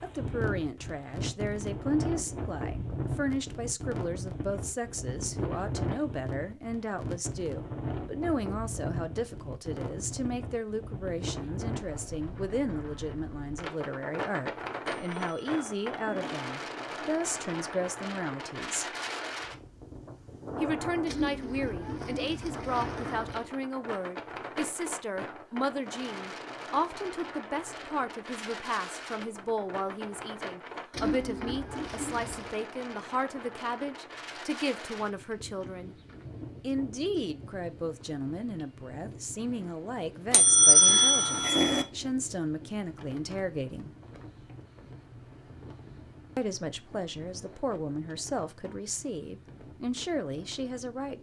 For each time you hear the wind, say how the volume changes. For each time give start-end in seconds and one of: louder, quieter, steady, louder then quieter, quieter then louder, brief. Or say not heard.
0.0-51.1 quieter.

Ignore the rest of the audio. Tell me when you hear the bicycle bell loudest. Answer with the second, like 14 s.
41 s.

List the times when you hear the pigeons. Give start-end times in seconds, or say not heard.
21.1-23.6, 30.9-32.5.